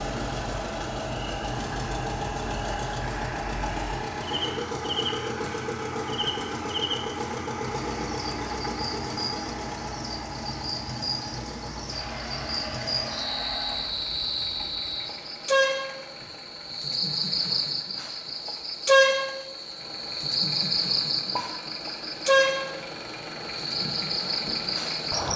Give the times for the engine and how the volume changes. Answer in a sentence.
The engine can be heard from 0.0 to 25.3 s, getting quieter then louder.